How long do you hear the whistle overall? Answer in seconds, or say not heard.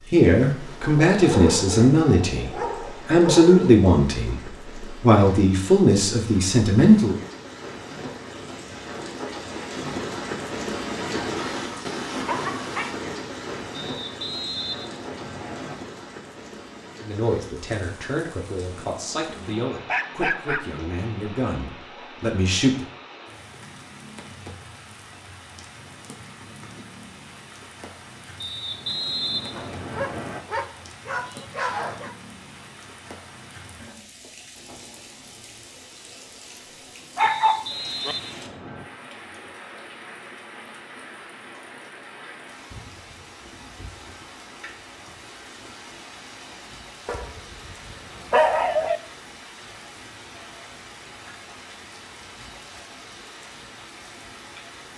6 s.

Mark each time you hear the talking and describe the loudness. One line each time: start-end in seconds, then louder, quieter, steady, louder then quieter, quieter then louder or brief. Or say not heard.
0.1-7.2 steady
17.0-22.9 steady.